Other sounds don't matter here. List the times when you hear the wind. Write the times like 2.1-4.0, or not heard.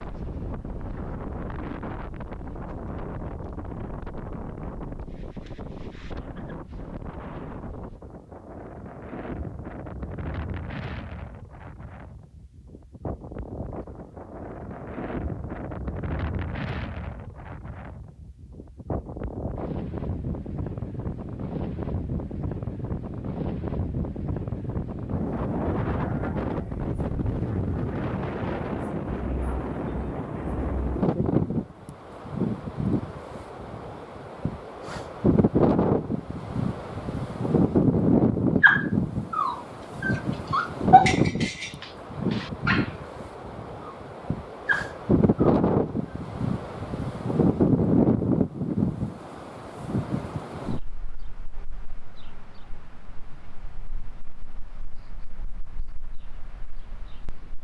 0.0-57.5.